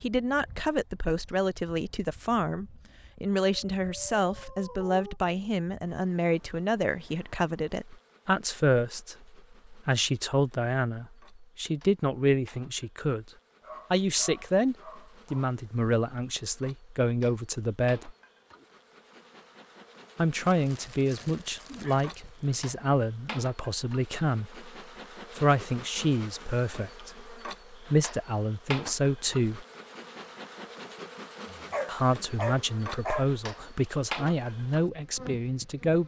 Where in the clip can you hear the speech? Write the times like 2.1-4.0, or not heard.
0.0-13.2, 13.9-18.1, 20.1-24.6, 25.3-29.6, 31.9-36.0.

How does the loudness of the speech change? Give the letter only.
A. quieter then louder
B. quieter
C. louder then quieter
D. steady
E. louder
D.